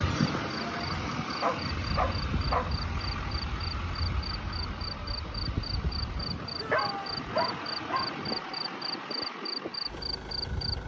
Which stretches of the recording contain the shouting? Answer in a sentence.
The shouting can be heard from 6.5 to 7.2 s.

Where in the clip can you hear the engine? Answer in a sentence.
The engine can be heard from 0.0 to 10.8 s.